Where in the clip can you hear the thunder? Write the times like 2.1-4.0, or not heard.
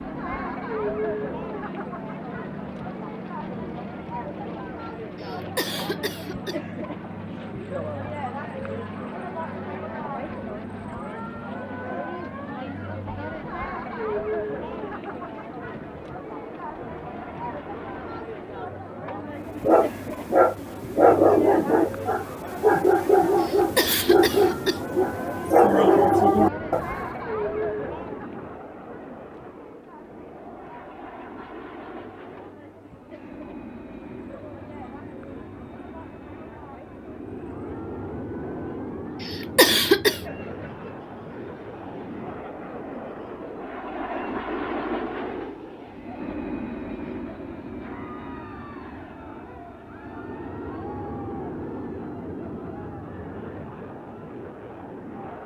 not heard.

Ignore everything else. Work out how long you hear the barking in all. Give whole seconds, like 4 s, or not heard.
7 s.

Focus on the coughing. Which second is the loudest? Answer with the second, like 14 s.
40 s.